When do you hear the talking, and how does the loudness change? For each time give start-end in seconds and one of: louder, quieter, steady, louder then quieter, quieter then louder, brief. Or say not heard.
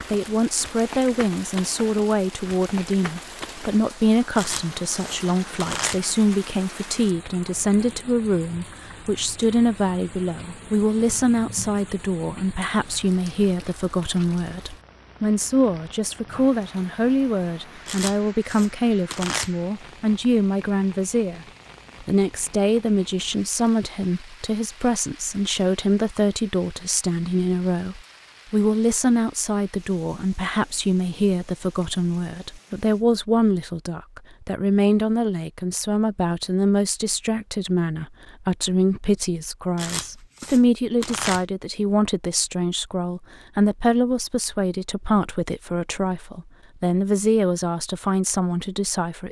0.1-49.2 steady.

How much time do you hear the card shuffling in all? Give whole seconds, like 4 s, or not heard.
5 s.